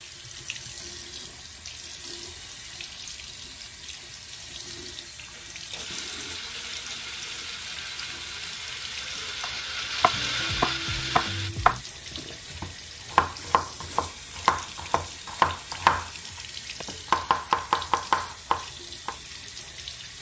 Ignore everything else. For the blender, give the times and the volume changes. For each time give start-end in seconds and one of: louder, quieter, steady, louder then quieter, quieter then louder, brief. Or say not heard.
5.3-11.5 louder.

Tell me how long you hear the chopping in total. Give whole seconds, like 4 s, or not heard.
10 s.